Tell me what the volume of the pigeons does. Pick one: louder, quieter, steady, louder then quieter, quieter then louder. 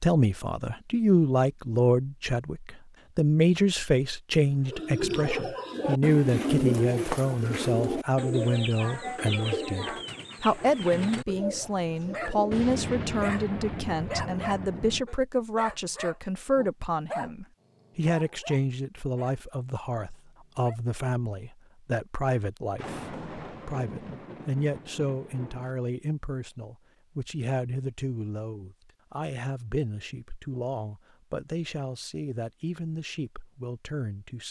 quieter.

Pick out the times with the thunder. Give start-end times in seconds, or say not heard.
12.5-15.1, 22.8-25.8.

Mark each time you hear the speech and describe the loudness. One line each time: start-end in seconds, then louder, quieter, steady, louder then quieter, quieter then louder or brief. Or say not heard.
0.0-34.4 quieter.